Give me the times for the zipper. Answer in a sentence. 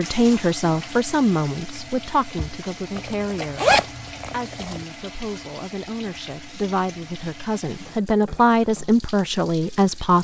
You can hear the zipper from 3.0 to 4.8 s.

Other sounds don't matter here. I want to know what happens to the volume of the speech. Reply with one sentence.
The loudness of the speech goes down, then up.